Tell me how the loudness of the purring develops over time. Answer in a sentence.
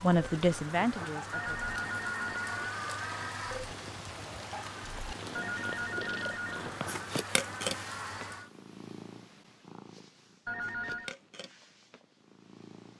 The volume of the purring goes up, then down.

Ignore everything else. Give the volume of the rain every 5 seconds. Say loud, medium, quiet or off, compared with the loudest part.
loud, loud, off.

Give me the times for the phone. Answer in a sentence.
You can hear the phone from 1.3 to 2.7 s, from 5.3 to 6.7 s and from 10.4 to 11.2 s.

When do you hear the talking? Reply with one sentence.
The talking can be heard from 0.0 to 1.6 s.